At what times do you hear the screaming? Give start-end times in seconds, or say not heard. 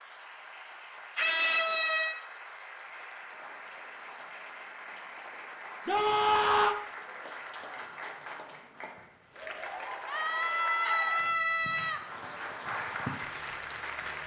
1.1-2.1, 5.8-6.8, 10.1-12.0.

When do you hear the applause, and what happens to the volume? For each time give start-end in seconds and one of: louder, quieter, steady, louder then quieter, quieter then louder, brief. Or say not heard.
0.0-14.2 louder.